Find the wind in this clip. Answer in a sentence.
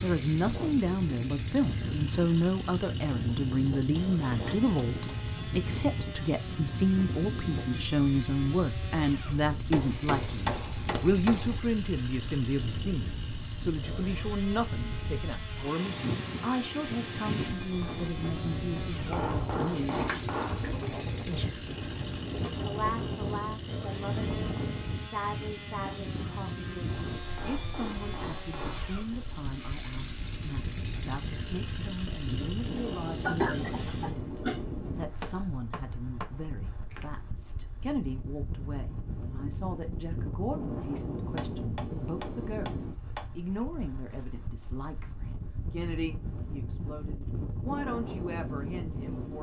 The wind can be heard from 0.0 to 49.3 s.